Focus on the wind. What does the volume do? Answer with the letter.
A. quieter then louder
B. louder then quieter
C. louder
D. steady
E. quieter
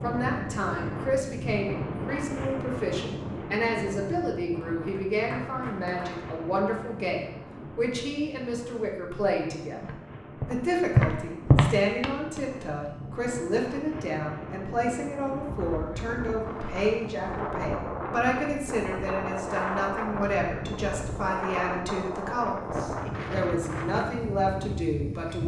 A.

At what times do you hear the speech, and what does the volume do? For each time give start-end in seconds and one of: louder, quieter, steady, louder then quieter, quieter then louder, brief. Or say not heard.
0.0-25.4 steady.